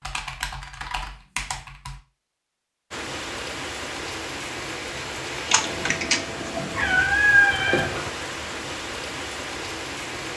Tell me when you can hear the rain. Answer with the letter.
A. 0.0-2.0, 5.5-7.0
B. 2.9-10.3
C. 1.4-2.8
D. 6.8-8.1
B.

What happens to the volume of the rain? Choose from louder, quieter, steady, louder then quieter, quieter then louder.
steady.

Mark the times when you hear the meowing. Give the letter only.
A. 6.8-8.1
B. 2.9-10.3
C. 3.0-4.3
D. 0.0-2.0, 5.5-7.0
A.